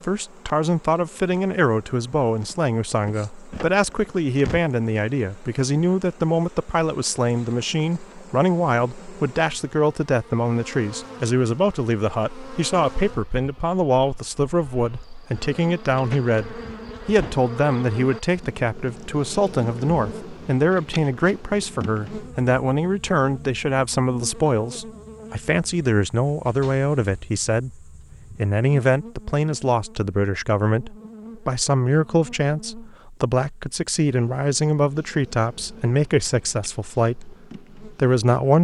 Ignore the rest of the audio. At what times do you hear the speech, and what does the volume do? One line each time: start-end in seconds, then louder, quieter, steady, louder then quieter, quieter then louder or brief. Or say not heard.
0.0-38.6 steady.